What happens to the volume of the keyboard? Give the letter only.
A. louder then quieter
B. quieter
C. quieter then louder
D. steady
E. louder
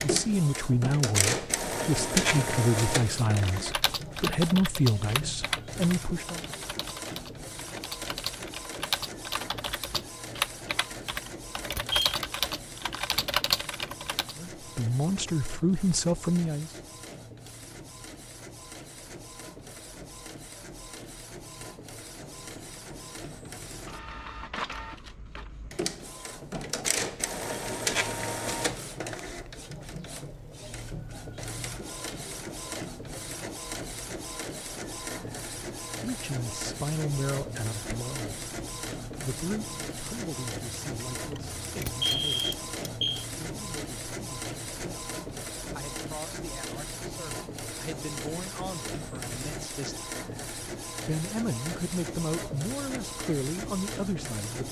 C.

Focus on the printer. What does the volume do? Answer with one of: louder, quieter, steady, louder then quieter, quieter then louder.
quieter then louder.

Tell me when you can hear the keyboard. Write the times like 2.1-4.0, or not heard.
3.2-14.3.